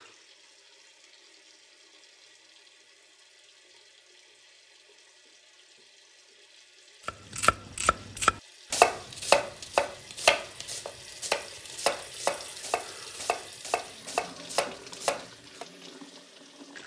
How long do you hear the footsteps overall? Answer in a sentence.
You can't hear the footsteps here.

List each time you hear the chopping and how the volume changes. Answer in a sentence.
You can hear the chopping from 7.0 to 15.7 s, getting quieter.